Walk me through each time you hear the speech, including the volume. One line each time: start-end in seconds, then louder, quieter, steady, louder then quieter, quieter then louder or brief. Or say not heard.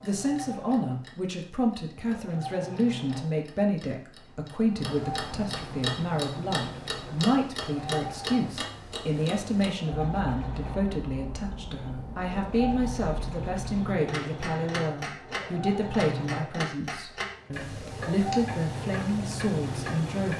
0.0-20.3 steady.